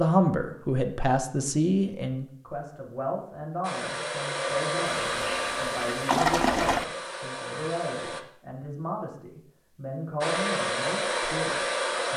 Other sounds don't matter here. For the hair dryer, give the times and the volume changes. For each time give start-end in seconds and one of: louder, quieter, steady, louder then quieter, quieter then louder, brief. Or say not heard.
3.6-8.2 quieter
10.2-12.1 brief.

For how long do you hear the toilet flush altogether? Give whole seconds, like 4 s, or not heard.
2 s.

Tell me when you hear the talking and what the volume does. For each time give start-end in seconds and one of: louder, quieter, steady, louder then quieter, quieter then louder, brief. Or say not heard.
0.0-12.1 quieter.